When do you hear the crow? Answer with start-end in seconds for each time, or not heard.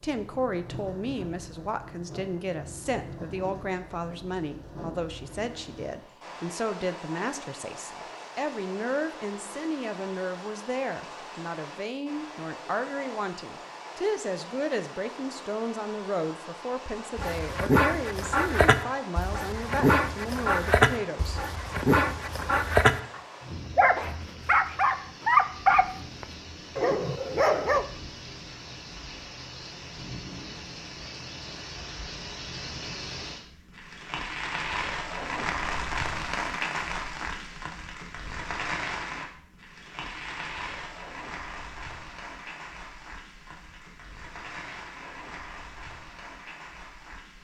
not heard.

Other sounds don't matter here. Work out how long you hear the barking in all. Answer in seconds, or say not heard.
11 s.